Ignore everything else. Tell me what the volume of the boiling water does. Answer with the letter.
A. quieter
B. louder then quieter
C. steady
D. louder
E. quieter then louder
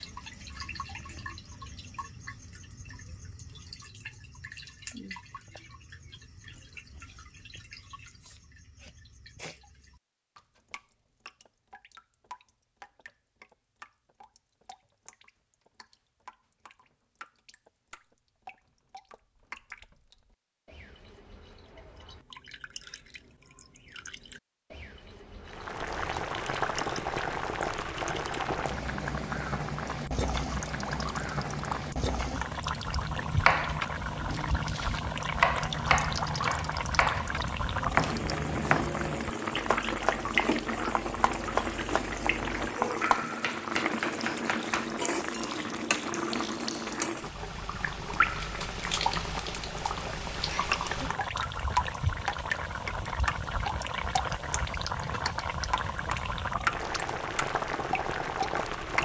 C.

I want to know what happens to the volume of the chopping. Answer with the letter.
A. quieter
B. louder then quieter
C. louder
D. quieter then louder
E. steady
A.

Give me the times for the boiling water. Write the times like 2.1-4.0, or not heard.
25.4-59.0.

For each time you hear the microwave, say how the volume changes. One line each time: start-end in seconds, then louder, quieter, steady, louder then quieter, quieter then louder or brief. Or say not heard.
not heard.